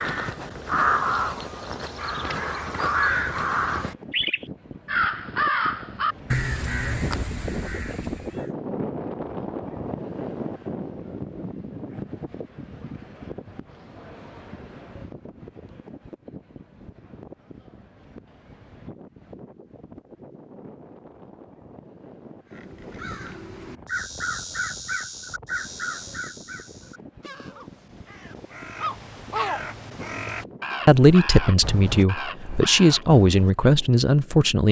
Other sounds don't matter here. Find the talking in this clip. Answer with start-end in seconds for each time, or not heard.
30.9-34.6.